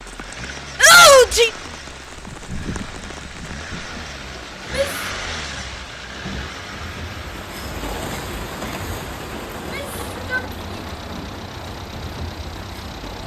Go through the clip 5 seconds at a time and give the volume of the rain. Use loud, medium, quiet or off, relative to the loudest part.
medium, loud, loud.